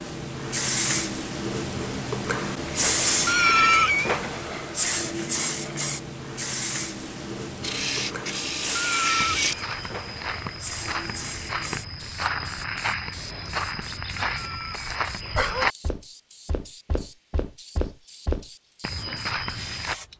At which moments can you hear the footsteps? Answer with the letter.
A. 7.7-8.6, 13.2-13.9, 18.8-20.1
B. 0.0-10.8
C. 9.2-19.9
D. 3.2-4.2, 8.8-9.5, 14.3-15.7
C.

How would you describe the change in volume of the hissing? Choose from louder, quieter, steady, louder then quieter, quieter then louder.
quieter.